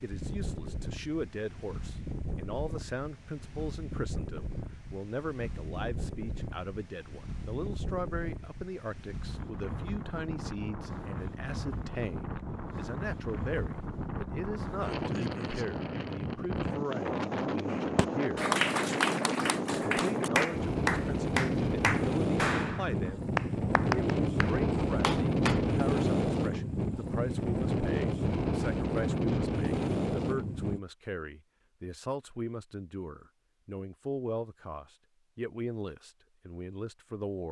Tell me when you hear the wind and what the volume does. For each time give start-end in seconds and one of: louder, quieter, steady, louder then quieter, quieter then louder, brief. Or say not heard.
0.0-30.8 louder.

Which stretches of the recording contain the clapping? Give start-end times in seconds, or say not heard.
17.7-25.6.